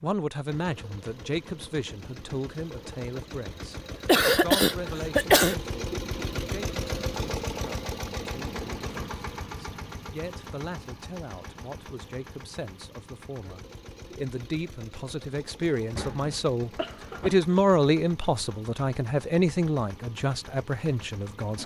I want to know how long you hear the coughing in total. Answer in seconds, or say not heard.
3 s.